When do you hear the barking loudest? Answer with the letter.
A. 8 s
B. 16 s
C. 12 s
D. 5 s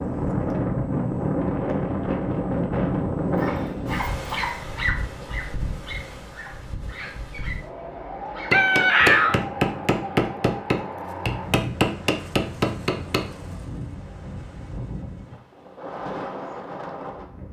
D.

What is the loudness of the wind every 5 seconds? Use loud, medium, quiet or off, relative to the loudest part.
loud, medium, medium, medium.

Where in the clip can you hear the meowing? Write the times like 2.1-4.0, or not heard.
8.5-9.4.